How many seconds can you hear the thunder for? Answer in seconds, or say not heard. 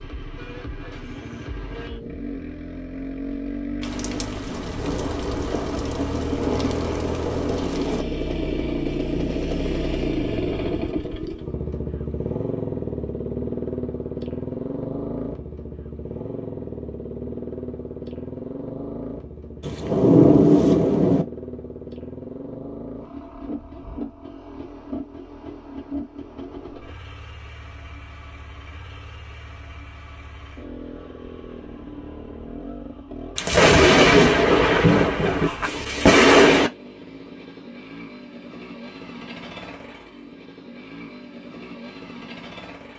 9 s.